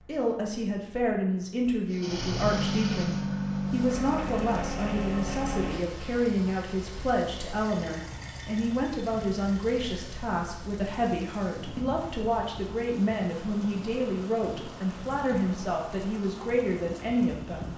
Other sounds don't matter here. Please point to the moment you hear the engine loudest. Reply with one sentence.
The loudest moment of the engine is at 3 seconds.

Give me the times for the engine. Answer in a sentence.
You can hear the engine from 1.9 to 10.1 s.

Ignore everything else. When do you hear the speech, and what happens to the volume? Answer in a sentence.
The speech can be heard from 0.0 to 17.7 s, at a steady volume.